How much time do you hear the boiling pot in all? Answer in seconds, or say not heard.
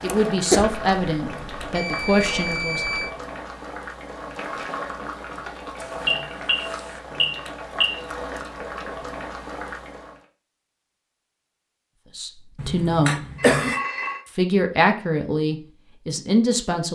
10 s.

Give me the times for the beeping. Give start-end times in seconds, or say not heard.
0.8-3.1, 5.8-8.0, 13.3-14.2.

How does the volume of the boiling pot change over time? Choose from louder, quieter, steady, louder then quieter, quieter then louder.
steady.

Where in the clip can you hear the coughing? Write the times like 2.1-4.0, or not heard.
0.1-0.7, 12.6-13.8.